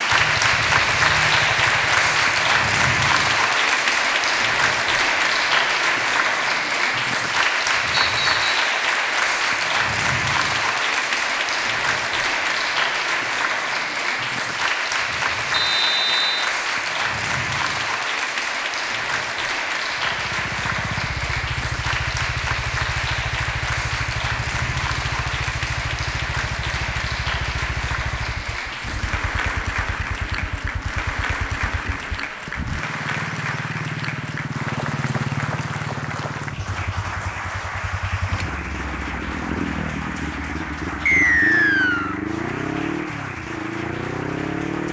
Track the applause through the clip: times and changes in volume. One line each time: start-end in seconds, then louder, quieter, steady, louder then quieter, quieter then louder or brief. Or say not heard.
0.0-44.8 quieter.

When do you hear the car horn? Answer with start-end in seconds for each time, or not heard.
not heard.